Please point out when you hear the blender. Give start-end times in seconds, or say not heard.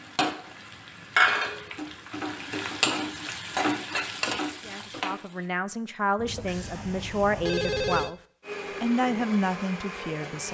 8.4-10.4.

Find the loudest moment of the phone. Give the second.
8 s.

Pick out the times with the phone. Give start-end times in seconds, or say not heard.
6.2-8.1.